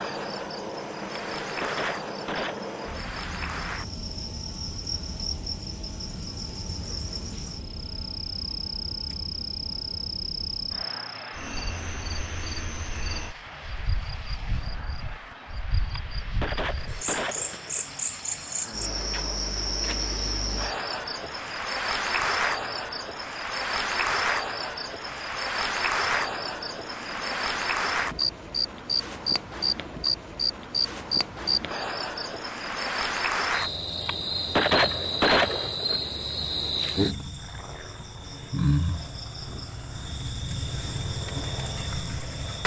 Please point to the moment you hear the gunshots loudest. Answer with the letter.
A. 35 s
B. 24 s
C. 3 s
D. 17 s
A.